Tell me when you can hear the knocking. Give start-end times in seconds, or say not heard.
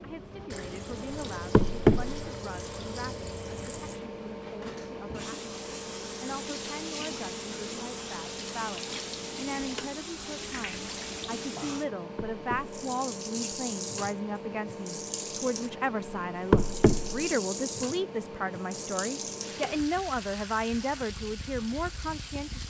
1.5-2.2, 12.2-12.8, 16.5-17.2.